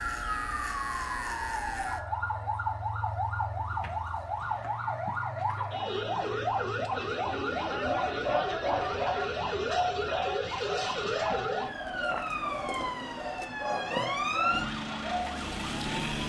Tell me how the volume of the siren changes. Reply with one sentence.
The loudness of the siren stays about the same.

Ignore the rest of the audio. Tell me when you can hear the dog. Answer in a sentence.
The dog can be heard from 7.7 to 15.5 s.